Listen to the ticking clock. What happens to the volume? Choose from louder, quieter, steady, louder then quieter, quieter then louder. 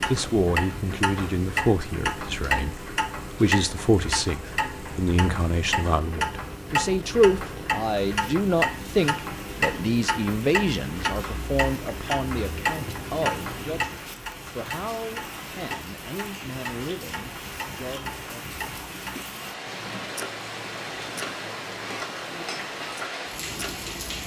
quieter.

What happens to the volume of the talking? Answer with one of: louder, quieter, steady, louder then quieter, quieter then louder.
quieter.